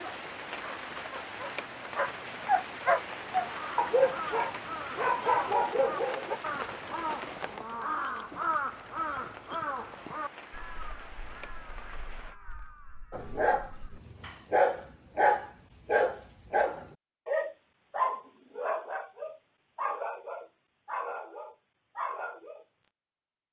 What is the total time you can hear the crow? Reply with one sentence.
The crow can be heard for 11 seconds in total.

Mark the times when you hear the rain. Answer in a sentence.
The rain can be heard from 0.0 to 12.3 s.